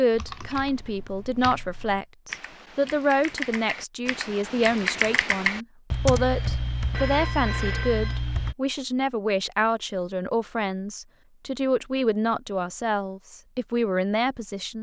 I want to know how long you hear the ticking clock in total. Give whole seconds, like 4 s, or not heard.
not heard.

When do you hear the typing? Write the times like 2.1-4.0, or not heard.
0.1-8.6.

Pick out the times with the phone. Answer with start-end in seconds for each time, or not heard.
6.9-8.2.